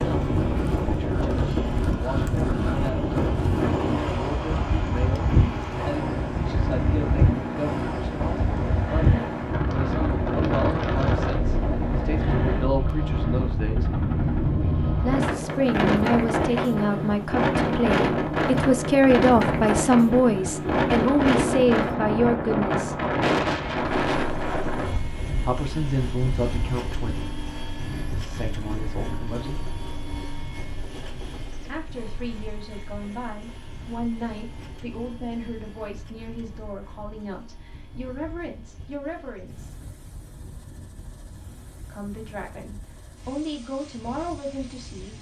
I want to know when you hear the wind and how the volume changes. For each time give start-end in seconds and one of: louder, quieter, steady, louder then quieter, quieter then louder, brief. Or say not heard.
0.0-45.1 quieter.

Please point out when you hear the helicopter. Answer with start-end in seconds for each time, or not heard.
0.0-45.1.